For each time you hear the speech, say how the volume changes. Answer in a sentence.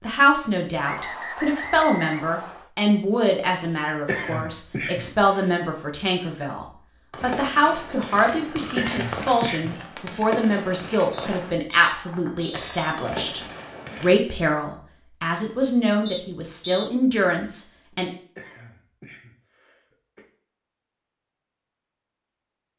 You can hear the speech from 0.0 to 13.4 s, at a steady volume; and from 14.0 to 18.1 s, at a steady volume.